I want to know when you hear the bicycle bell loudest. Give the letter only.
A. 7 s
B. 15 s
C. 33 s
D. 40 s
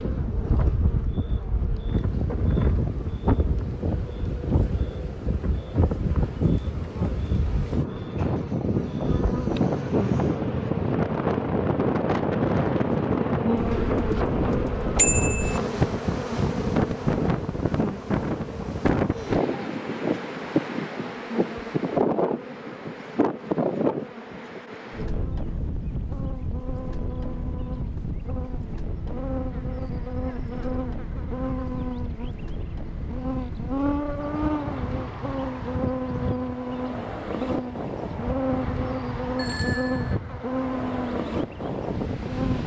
B.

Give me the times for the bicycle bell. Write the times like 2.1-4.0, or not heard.
14.9-15.6, 39.4-40.1.